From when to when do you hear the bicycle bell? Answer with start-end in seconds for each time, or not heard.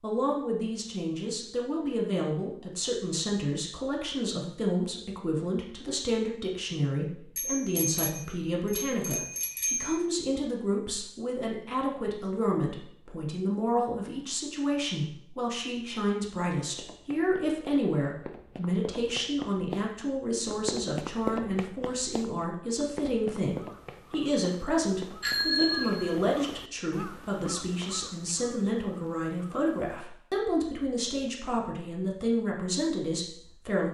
7.3-10.1, 25.2-26.1.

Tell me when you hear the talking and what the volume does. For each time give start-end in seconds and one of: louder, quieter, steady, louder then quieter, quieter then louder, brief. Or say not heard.
0.0-33.8 steady.